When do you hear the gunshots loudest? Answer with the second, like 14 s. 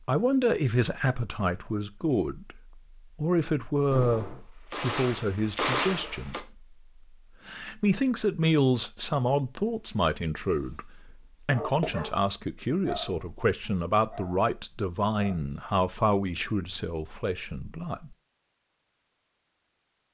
6 s.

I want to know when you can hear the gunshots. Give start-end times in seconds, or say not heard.
3.9-6.4.